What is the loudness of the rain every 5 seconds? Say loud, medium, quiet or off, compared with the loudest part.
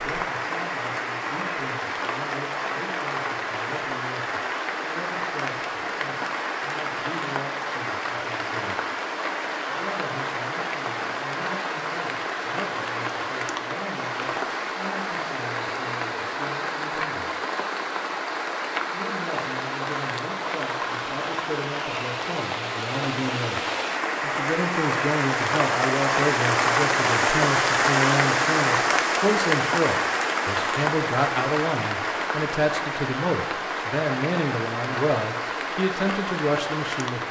medium, medium, medium, medium, medium, loud, medium, medium.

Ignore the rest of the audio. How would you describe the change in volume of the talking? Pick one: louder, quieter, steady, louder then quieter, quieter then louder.
louder.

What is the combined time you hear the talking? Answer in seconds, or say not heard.
34 s.